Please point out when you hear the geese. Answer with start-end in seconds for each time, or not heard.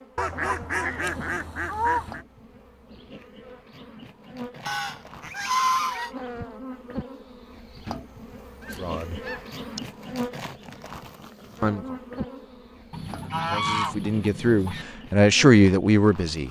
0.1-2.2, 4.7-6.1, 8.6-9.8, 12.9-14.8.